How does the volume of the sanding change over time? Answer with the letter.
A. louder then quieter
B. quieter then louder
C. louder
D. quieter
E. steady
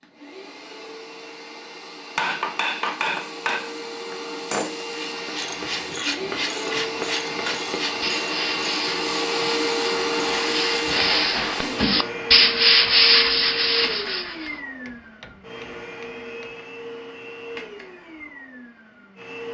C.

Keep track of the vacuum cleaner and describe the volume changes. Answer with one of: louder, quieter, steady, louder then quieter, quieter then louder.
louder then quieter.